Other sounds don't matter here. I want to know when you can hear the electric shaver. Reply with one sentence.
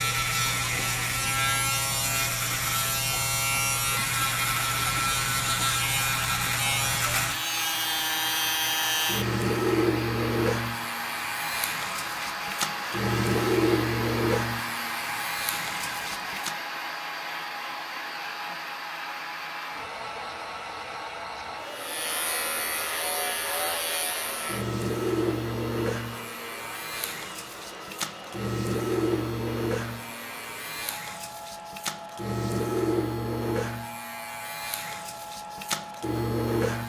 The electric shaver can be heard from 0.0 to 16.6 s and from 21.8 to 36.8 s.